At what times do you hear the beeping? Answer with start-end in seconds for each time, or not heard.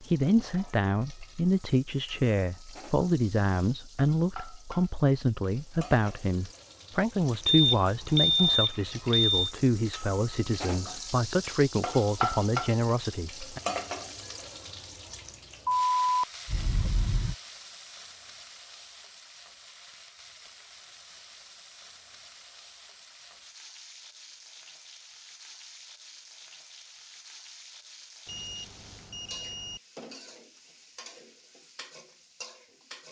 7.5-9.5, 15.7-17.4, 28.2-29.8.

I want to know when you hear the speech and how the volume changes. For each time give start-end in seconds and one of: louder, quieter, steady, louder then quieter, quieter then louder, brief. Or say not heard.
0.0-13.6 steady.